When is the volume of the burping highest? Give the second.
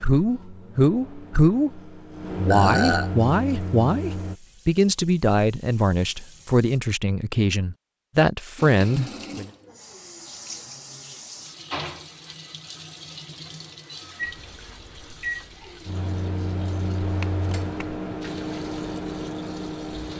3 s.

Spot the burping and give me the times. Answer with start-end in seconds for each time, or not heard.
2.5-3.1, 17.0-17.9.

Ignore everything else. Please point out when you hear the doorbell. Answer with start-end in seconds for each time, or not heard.
not heard.